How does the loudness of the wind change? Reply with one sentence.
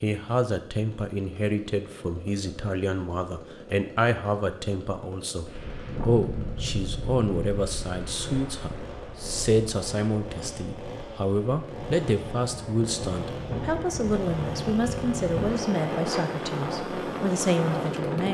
The volume of the wind goes down, then up.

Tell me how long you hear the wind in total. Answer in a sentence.
You can hear the wind for 13 seconds altogether.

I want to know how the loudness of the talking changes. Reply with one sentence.
The volume of the talking stays about the same.